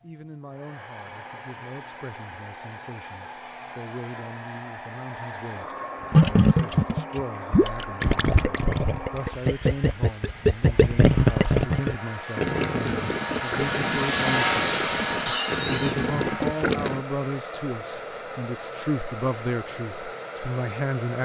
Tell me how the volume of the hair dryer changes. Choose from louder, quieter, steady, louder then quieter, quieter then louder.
louder then quieter.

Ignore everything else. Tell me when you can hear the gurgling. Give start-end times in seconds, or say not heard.
6.1-17.0.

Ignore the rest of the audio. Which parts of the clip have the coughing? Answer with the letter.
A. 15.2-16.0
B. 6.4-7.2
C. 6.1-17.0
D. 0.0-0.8
A.